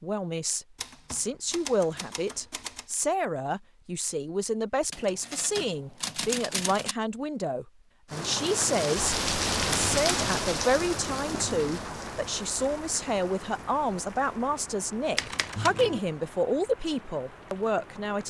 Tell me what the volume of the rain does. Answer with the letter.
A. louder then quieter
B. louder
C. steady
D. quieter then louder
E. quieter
E.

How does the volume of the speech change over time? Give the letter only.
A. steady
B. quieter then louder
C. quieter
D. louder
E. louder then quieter
A.